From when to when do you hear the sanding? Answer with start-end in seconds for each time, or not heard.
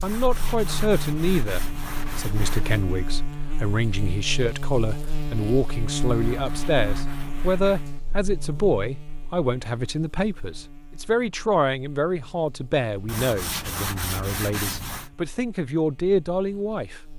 0.0-2.9, 6.2-7.9, 13.1-15.1.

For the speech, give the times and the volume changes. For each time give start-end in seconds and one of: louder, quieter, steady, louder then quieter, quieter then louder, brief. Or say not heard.
0.0-17.0 steady.